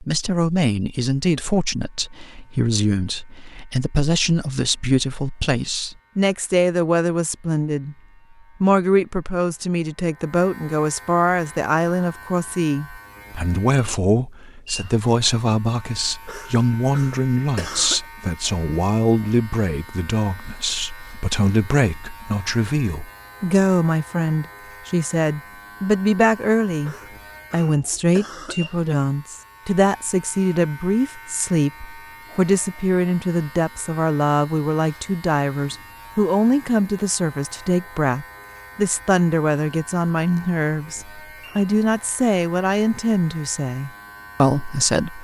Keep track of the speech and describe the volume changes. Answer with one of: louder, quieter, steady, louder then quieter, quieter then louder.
steady.